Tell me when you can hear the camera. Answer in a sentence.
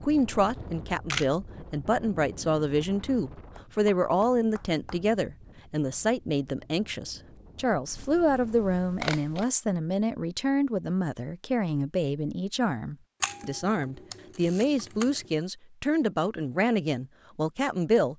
The camera can be heard from 0.6 to 1.2 s, from 7.9 to 9.4 s and from 13.2 to 15.3 s.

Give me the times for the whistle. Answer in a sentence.
You can't hear the whistle here.